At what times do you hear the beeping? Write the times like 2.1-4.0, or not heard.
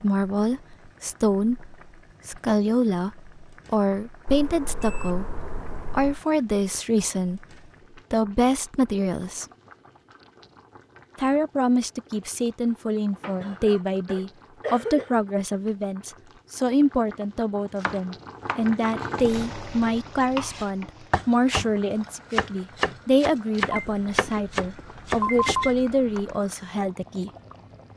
4.2-6.2, 23.7-26.4.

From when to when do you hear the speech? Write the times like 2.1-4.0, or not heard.
0.0-7.5, 8.1-9.4, 11.2-27.3.